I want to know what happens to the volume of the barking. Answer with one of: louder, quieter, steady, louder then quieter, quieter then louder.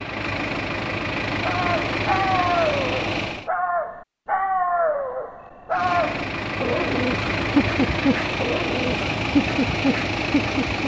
steady.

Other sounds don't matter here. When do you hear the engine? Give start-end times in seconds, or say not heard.
0.0-3.5, 5.7-10.8.